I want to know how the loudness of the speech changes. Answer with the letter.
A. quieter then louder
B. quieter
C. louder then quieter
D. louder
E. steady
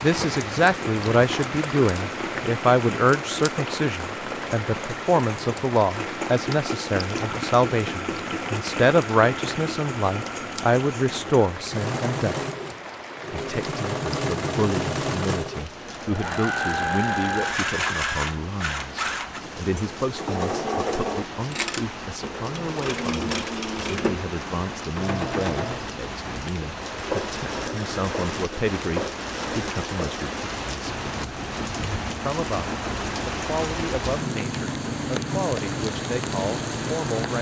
B.